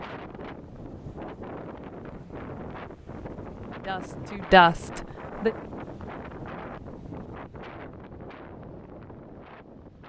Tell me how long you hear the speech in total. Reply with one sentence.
The speech can be heard for 2 seconds in total.